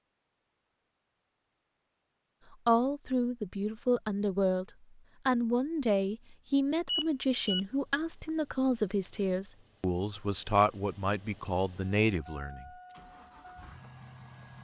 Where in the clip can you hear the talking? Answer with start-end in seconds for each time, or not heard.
2.5-12.7.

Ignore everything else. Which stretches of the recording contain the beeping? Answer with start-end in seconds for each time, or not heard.
6.8-7.6.